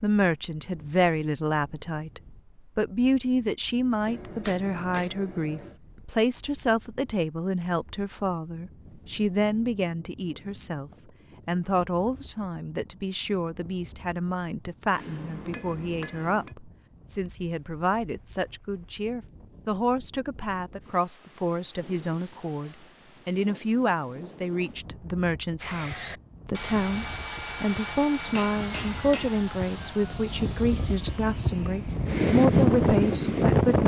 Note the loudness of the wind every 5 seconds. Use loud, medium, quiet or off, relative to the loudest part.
quiet, quiet, quiet, quiet, quiet, quiet, loud.